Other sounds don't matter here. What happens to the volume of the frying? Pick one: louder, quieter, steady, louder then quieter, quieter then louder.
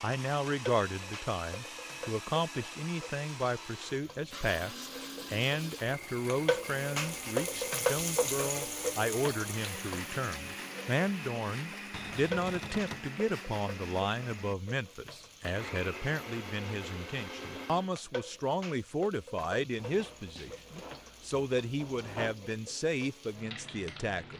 louder then quieter.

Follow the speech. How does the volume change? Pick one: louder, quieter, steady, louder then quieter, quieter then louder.
steady.